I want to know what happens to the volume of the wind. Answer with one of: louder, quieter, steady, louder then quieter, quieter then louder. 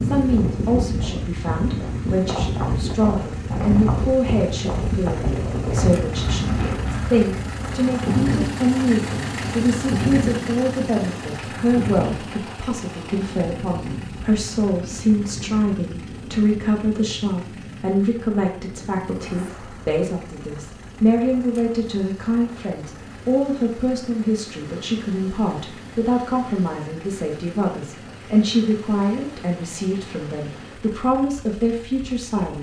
quieter.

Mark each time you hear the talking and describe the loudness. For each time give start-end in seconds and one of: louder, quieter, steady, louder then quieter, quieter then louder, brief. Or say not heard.
0.0-32.5 steady.